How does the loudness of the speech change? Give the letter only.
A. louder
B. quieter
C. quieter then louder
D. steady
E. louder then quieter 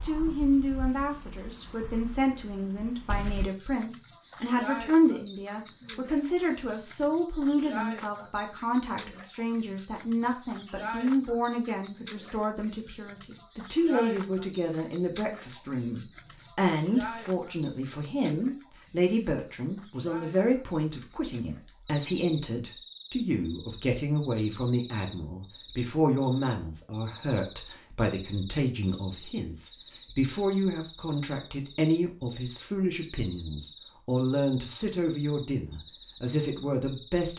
D.